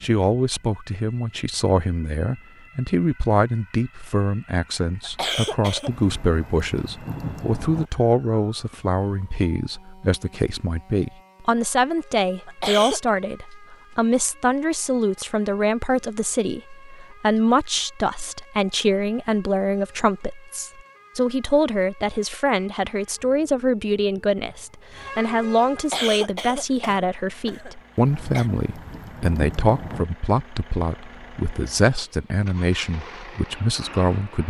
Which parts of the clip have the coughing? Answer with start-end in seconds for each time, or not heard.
5.0-5.9, 12.4-13.1, 25.8-28.4.